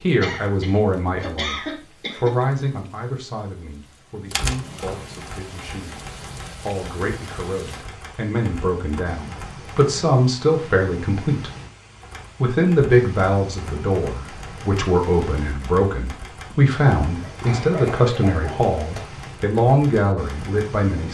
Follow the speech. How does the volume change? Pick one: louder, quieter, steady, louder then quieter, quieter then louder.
quieter then louder.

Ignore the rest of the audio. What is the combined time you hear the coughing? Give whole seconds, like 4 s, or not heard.
4 s.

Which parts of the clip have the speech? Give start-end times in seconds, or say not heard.
0.0-11.5, 12.4-21.0.